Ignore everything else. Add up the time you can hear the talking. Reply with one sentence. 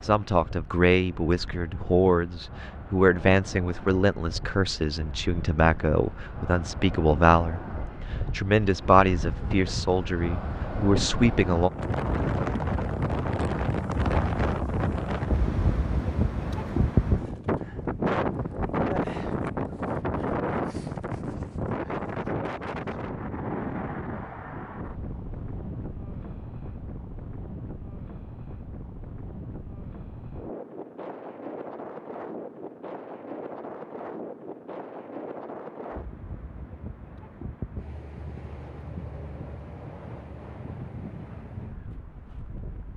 You can hear the talking for 11 seconds altogether.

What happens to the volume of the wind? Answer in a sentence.
The loudness of the wind goes up, then down.